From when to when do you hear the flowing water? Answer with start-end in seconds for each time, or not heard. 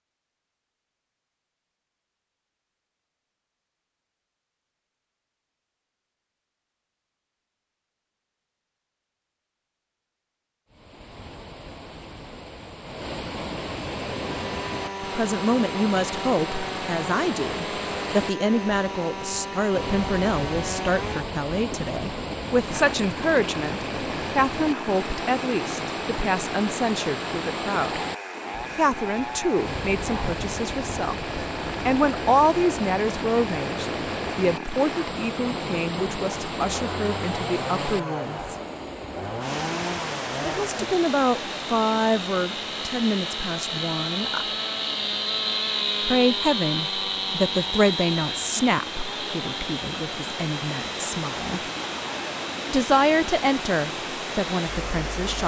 10.7-55.4.